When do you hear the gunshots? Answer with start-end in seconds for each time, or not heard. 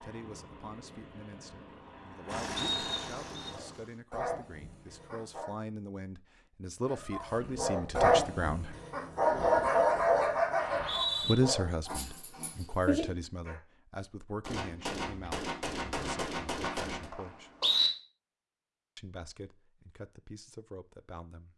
14.4-17.1.